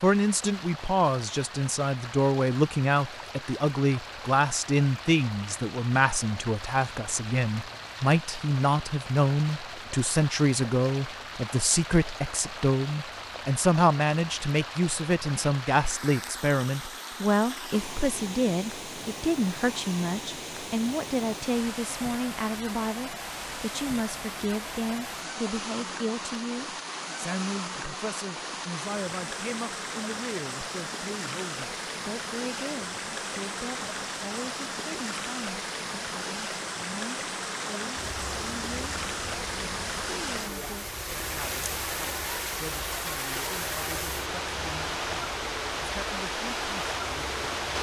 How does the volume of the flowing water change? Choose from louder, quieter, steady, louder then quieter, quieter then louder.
louder.